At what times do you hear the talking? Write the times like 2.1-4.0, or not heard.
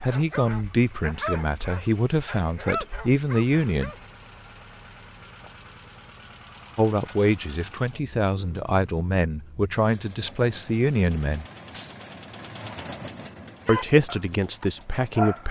0.0-3.9, 6.8-11.4, 13.7-15.4.